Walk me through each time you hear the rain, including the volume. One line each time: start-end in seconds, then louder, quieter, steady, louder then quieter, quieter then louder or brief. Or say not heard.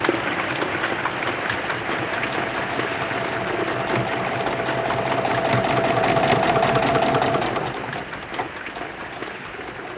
0.0-9.9 quieter.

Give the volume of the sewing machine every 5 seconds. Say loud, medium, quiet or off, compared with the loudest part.
medium, loud.